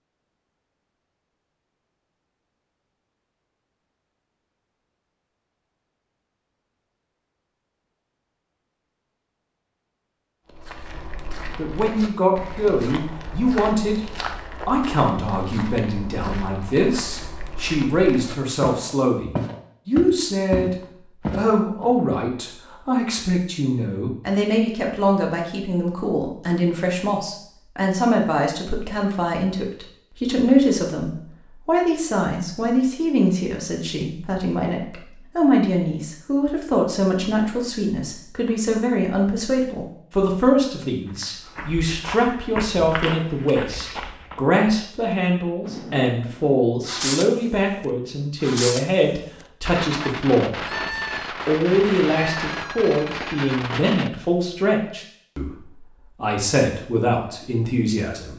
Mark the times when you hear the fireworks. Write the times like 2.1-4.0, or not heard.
45.6-47.5, 48.4-49.0, 49.6-54.1.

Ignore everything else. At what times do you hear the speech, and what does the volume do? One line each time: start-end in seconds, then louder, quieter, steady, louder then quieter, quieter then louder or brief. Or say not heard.
11.6-14.0 brief
14.7-58.3 steady.